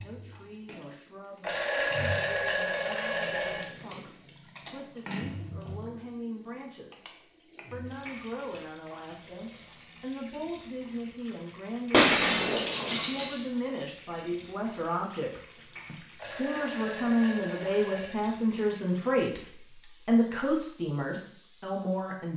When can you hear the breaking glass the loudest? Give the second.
12 s.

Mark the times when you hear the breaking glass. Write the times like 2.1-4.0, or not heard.
11.9-13.4.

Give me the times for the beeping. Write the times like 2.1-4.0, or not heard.
1.4-3.7, 16.1-18.1.